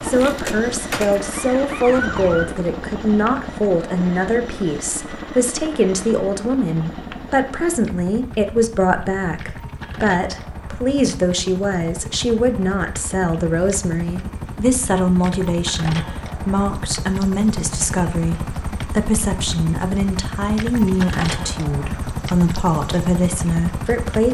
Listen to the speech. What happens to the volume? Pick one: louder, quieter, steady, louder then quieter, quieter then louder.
steady.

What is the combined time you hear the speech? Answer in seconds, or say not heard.
24 s.